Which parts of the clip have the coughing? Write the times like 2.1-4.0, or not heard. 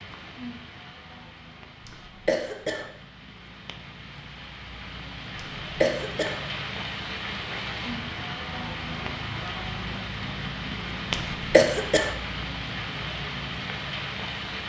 1.9-2.9, 5.3-6.4, 11.1-12.2.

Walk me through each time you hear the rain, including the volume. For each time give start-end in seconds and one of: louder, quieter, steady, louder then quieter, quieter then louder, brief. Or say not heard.
0.0-14.6 louder.